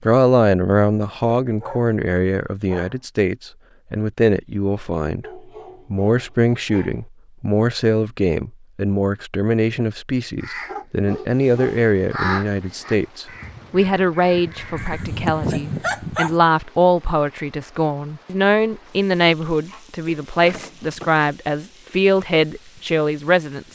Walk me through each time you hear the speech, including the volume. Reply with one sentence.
You can hear the speech from 0.0 to 23.6 s, at a steady volume.